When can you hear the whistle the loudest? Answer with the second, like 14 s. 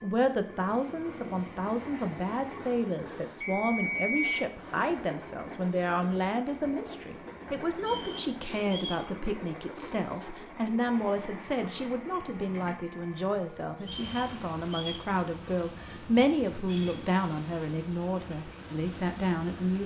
4 s.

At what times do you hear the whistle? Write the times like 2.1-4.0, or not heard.
3.4-4.5, 7.8-9.1, 13.8-15.1.